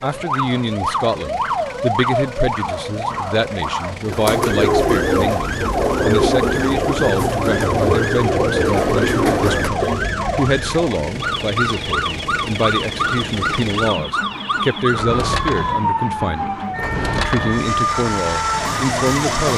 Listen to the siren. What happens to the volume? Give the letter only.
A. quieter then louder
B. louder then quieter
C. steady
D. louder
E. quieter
C.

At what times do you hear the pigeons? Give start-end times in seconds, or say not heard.
4.0-10.2.